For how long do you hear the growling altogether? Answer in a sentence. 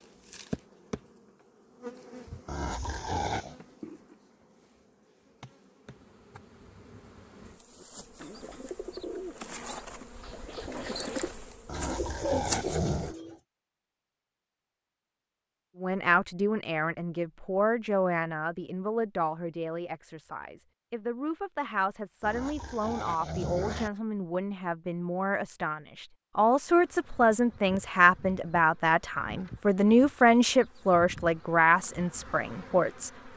You can hear the growling for 4 seconds altogether.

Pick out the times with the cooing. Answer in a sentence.
You can hear the cooing from 7.8 to 13.4 s.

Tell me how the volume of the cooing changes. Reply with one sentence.
The volume of the cooing goes up.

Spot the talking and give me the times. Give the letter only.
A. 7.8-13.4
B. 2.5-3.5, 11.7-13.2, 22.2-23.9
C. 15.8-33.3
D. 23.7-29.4
C.